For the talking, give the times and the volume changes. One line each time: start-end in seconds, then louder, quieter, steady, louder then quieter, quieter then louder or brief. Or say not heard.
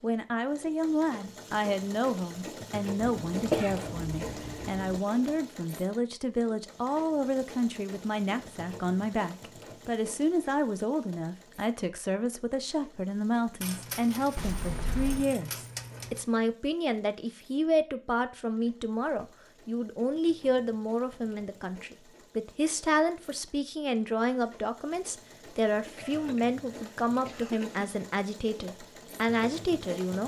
0.0-30.2 steady.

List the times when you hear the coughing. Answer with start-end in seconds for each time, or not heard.
3.0-5.0, 14.3-15.2, 25.9-27.9.